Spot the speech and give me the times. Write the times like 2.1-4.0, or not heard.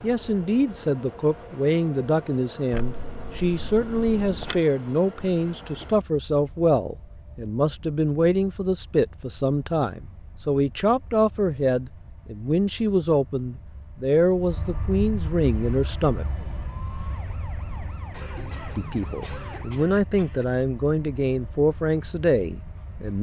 0.0-16.2, 18.8-23.1.